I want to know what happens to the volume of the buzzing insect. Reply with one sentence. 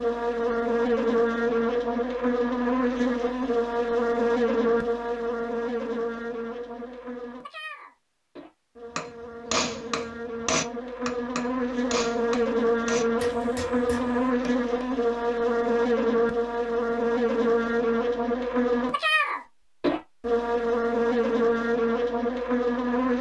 The loudness of the buzzing insect goes down, then up.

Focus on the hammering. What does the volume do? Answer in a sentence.
The loudness of the hammering goes down.